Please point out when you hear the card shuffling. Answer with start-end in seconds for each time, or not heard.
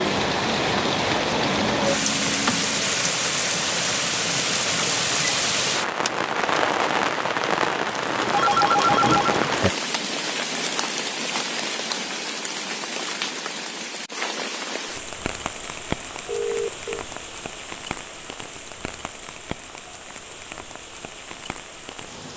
not heard.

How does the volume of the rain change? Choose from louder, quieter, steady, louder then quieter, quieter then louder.
quieter.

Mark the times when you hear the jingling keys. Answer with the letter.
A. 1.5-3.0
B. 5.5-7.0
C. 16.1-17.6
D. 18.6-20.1
A.